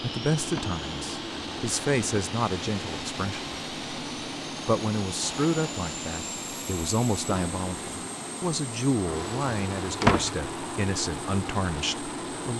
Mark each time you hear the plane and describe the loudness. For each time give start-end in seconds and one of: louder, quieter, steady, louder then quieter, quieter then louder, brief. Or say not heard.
0.0-12.5 steady.